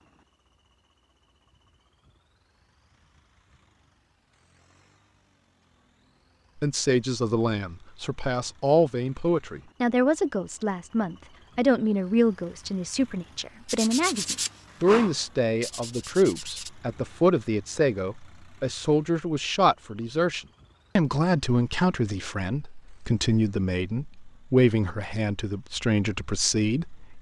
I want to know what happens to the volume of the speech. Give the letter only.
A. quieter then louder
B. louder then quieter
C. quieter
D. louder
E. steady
E.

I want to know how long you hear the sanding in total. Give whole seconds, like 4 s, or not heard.
3 s.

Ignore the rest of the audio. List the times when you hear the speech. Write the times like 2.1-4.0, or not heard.
6.6-27.1.